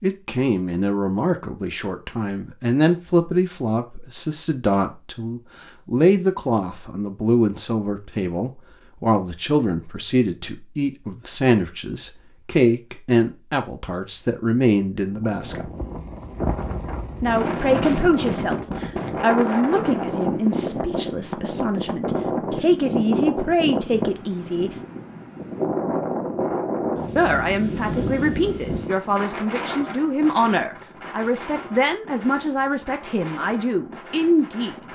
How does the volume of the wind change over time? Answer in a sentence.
The loudness of the wind goes down.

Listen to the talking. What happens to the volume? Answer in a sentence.
The loudness of the talking stays about the same.